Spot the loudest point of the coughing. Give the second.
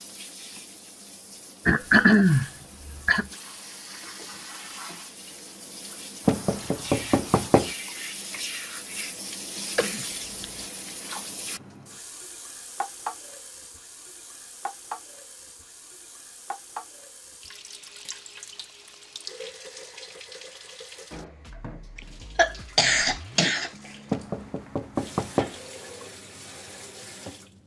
2 s.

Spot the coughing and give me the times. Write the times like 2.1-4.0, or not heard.
1.6-3.2, 9.8-10.7, 21.9-23.7.